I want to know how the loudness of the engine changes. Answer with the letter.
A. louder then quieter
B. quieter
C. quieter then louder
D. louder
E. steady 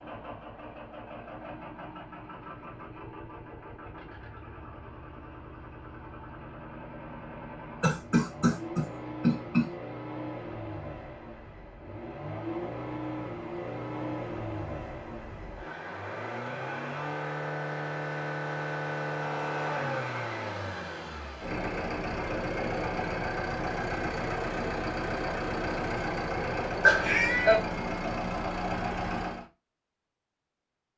D.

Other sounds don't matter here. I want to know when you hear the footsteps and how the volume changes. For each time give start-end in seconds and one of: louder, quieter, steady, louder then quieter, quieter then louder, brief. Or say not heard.
not heard.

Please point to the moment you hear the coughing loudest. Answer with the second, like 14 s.
27 s.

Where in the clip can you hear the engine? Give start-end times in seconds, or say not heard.
0.0-29.4.